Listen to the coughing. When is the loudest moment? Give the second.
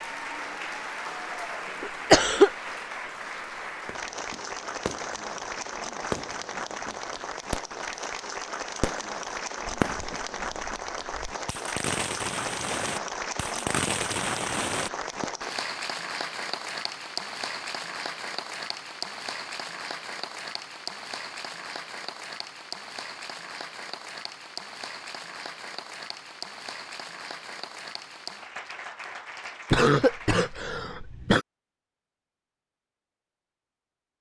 2 s.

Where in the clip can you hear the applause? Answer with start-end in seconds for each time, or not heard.
0.0-30.6.